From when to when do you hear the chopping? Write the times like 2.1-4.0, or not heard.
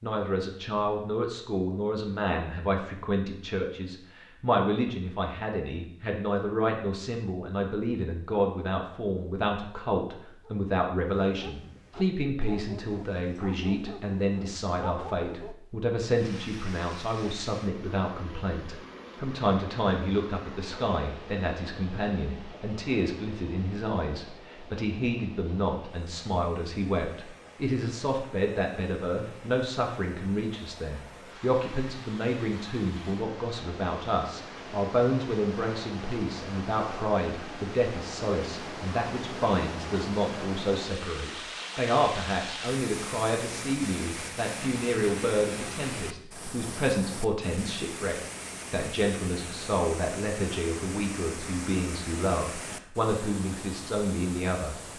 not heard.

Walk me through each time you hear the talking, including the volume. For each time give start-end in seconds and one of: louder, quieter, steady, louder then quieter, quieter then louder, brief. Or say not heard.
0.0-54.8 steady.